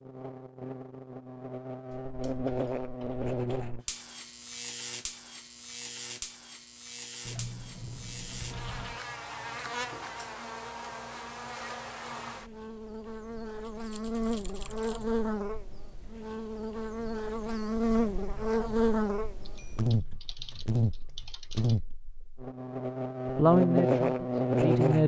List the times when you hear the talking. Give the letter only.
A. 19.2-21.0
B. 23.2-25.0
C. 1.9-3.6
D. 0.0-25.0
B.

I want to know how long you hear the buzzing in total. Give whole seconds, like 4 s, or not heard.
25 s.